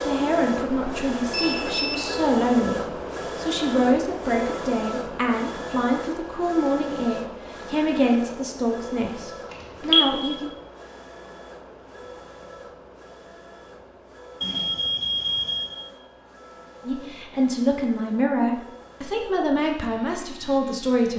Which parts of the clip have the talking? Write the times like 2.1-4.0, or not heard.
0.0-10.5, 16.9-21.1.